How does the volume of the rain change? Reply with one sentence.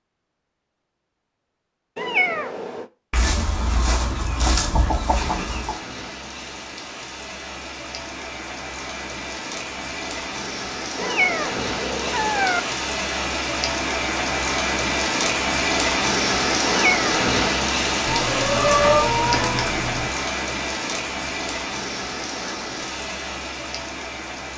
The volume of the rain goes up, then down.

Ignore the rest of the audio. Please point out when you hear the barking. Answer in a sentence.
You can't hear the barking here.